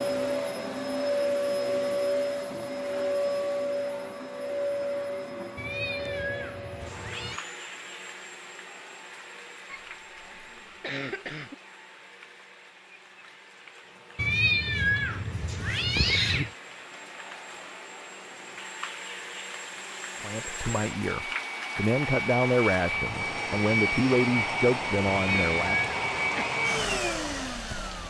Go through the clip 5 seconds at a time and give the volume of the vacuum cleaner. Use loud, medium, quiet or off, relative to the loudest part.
loud, medium, quiet, quiet, loud, loud.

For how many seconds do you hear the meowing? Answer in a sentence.
The meowing can be heard for 5 seconds in total.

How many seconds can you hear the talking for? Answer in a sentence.
The talking can be heard for 6 seconds in total.